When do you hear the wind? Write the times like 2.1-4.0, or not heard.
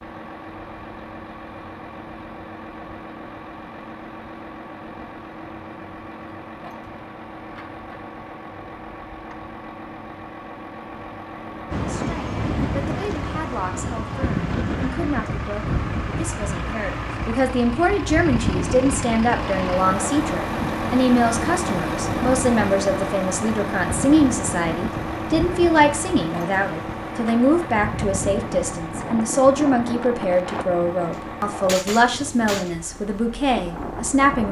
11.7-34.4.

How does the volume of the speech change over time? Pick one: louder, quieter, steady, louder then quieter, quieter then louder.
louder.